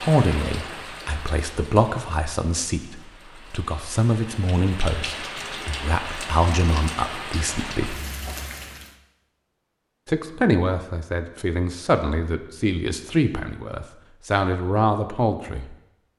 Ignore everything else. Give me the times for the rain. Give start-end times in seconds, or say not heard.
0.0-8.9.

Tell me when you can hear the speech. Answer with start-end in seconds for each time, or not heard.
0.0-8.0, 10.1-15.8.